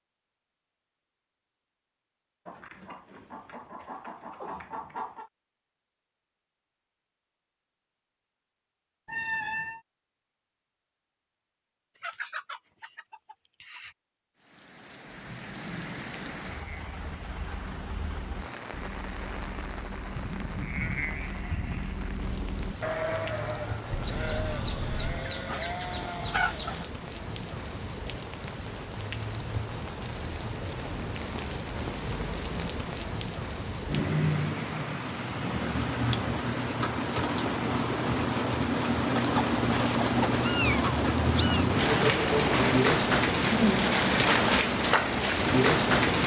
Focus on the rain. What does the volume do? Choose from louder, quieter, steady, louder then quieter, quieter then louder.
louder.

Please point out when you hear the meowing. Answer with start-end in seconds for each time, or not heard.
9.1-9.8, 23.9-25.2, 40.4-41.6.